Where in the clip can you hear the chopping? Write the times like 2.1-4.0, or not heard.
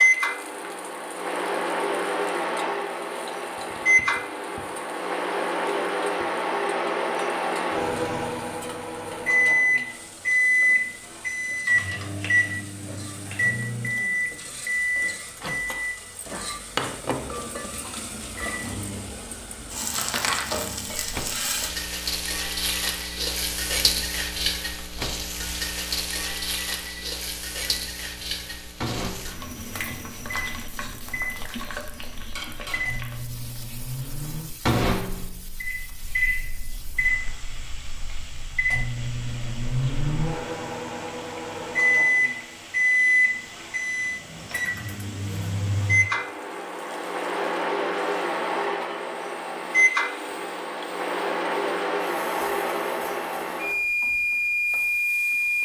not heard.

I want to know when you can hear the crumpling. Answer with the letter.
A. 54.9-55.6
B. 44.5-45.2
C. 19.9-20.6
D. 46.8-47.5
C.